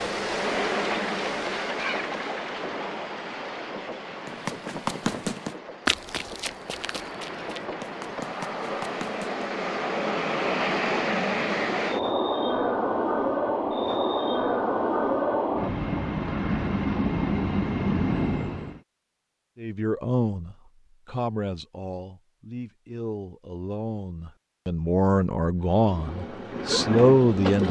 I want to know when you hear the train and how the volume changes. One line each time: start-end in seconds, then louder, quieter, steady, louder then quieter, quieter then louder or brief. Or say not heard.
0.0-18.8 quieter then louder
25.6-27.6 brief.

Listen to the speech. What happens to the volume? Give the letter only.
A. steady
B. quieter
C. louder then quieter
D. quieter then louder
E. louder
D.